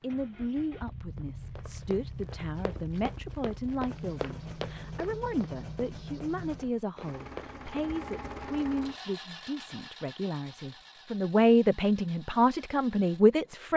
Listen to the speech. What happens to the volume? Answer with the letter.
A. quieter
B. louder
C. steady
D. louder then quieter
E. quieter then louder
B.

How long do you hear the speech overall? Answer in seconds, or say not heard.
14 s.